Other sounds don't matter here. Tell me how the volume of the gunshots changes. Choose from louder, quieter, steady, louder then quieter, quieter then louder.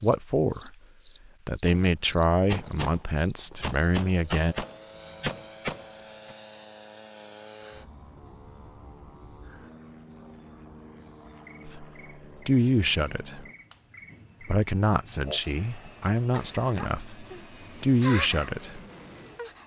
steady.